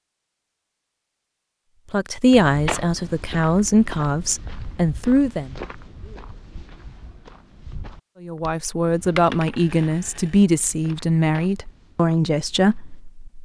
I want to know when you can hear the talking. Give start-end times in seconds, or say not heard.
1.9-5.5, 8.2-13.4.